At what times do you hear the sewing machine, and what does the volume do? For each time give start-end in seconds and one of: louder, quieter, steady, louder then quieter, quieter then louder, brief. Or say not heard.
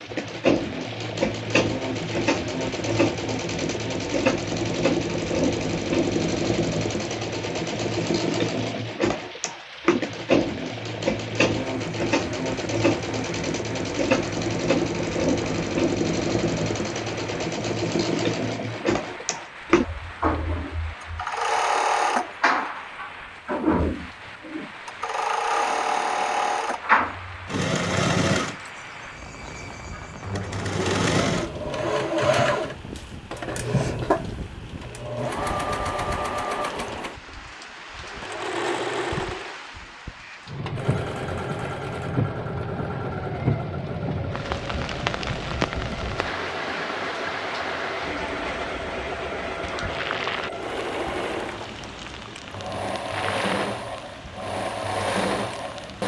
0.0-56.0 quieter.